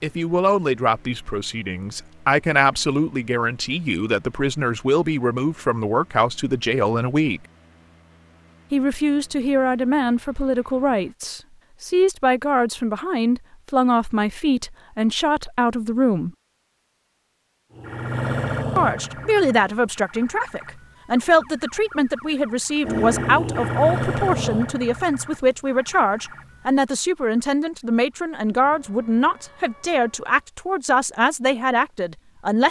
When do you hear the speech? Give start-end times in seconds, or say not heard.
0.0-7.4, 8.7-16.3, 18.8-32.6.